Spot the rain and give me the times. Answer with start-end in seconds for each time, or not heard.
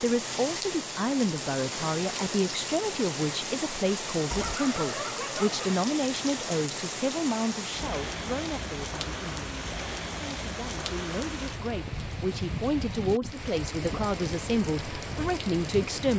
0.0-16.1.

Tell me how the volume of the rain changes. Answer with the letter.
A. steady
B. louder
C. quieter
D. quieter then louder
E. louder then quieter
A.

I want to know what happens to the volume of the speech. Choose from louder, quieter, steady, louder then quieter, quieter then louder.
quieter then louder.